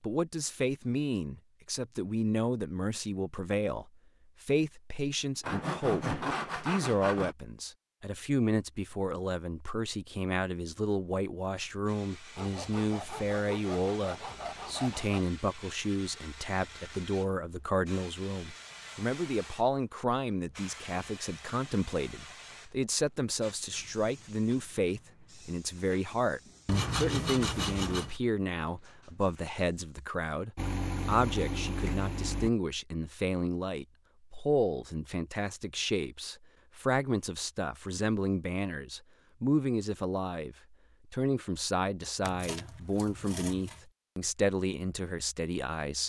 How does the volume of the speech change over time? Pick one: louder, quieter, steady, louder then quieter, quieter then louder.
steady.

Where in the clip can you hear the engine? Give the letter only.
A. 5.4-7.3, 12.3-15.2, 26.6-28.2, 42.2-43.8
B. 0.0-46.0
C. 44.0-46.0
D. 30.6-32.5
D.